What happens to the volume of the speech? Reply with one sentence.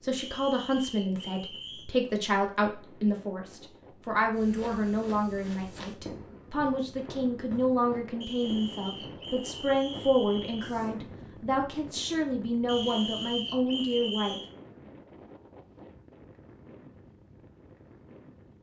The loudness of the speech stays about the same.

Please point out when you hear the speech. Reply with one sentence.
You can hear the speech from 0.0 to 14.4 s.